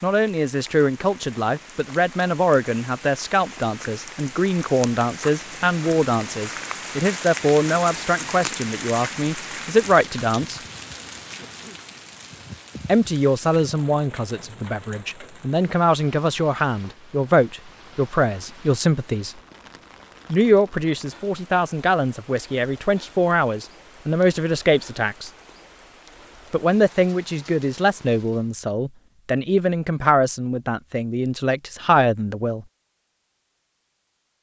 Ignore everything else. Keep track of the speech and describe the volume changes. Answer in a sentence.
The loudness of the speech stays about the same.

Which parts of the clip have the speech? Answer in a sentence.
The speech can be heard from 0.0 to 10.6 s, from 12.8 to 19.4 s, from 20.3 to 25.3 s and from 26.5 to 32.6 s.